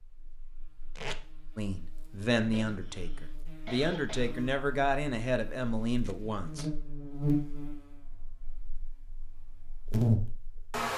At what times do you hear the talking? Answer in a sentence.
You can hear the talking from 1.6 to 6.7 s.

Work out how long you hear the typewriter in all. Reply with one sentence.
The typewriter can't be heard in this clip.